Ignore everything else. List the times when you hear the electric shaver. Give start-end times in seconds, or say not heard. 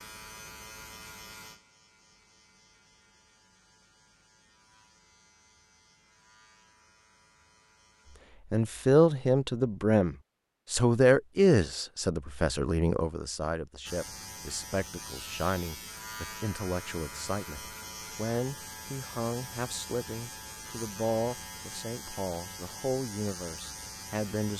0.0-8.2, 13.8-24.5.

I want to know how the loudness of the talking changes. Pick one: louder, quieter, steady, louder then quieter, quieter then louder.
quieter.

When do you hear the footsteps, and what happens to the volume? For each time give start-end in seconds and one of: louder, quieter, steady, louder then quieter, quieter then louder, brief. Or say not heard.
not heard.